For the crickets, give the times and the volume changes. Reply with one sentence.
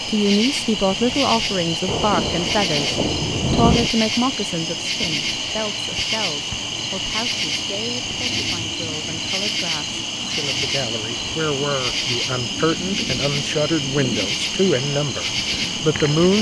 You can hear the crickets from 0.0 to 16.3 s, at a steady volume.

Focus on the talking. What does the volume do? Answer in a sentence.
The volume of the talking goes down, then up.